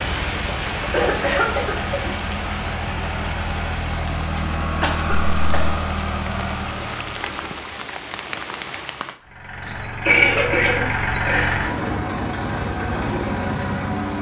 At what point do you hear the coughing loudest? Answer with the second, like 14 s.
10 s.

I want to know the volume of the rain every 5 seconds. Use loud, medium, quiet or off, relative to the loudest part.
loud, loud, off.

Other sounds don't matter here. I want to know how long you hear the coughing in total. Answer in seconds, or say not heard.
4 s.